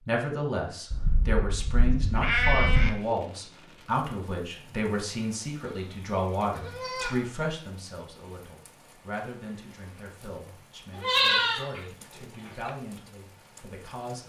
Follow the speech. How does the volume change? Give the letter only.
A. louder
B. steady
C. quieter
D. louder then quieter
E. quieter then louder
C.